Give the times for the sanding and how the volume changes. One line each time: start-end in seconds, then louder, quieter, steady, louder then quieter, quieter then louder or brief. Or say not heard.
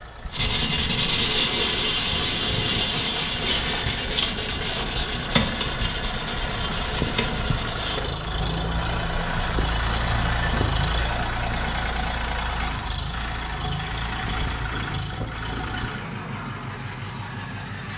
0.3-12.1 quieter.